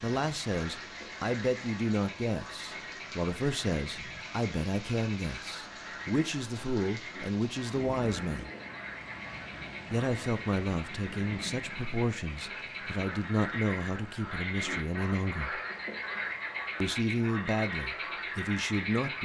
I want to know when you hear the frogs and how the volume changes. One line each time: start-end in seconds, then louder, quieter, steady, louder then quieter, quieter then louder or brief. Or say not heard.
0.0-19.1 louder.